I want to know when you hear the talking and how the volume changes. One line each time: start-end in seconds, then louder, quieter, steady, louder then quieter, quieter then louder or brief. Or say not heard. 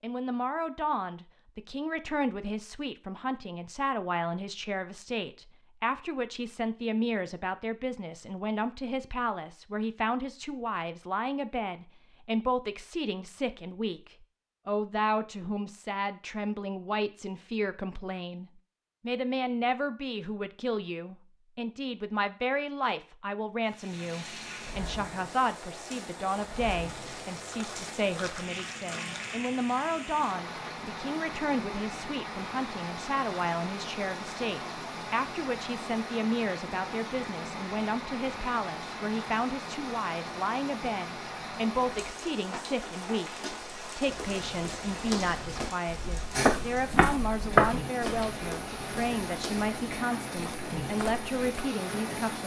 0.0-52.4 steady.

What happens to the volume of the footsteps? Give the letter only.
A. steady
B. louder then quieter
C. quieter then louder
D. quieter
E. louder
B.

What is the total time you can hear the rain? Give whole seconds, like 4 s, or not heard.
29 s.